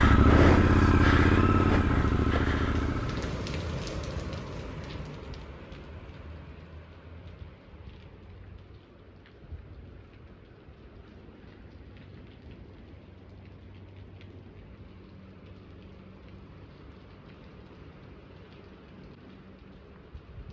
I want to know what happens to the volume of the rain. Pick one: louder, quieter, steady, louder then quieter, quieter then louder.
quieter.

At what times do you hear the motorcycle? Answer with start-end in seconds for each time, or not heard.
0.0-3.5.